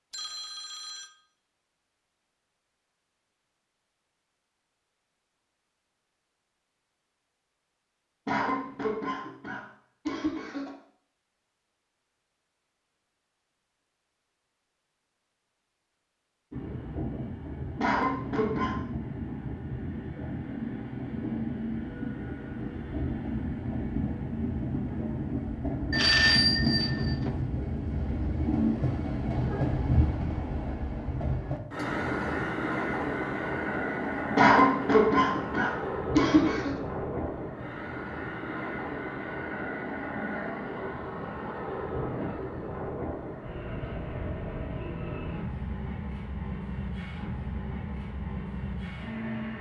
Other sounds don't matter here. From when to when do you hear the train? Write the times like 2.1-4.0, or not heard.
16.5-49.5.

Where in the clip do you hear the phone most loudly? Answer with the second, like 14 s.
26 s.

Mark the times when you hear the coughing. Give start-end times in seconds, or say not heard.
8.2-10.7, 17.8-18.8, 34.4-36.8.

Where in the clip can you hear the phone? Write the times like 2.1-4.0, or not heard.
0.1-1.1, 25.9-27.3.